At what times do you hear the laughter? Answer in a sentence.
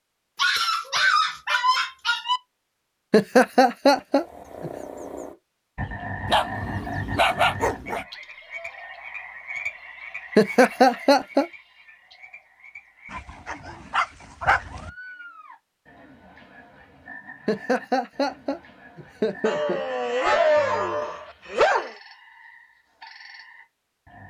You can hear the laughter from 3.1 to 4.7 s, from 10.3 to 11.4 s and from 17.4 to 19.8 s.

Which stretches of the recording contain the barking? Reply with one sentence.
You can hear the barking from 0.3 to 2.4 s, from 6.2 to 8.1 s, from 13.1 to 14.9 s and from 19.4 to 21.9 s.